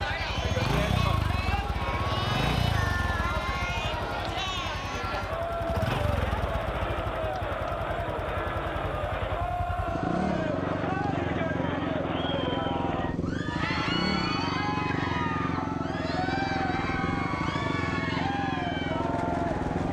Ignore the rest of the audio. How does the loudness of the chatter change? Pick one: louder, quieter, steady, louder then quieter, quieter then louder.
steady.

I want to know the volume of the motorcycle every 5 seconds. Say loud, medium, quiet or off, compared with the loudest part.
loud, medium, loud, loud.